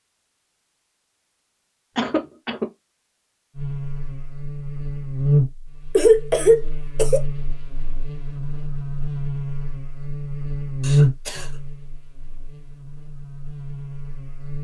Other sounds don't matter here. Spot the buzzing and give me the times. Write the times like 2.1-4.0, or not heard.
3.5-14.5.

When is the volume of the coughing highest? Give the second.
6 s.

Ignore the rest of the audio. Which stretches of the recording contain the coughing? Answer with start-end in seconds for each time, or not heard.
1.9-2.6, 5.9-7.2, 10.8-11.5.